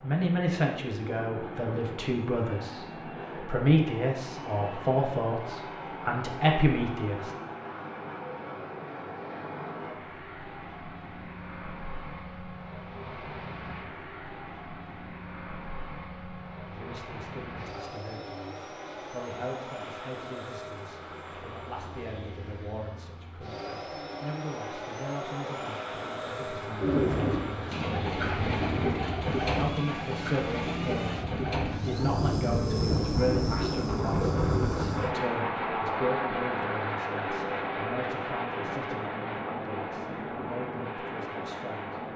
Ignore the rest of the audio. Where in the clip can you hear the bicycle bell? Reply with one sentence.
You can't hear the bicycle bell here.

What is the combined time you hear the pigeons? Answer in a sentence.
You can hear the pigeons for 8 seconds altogether.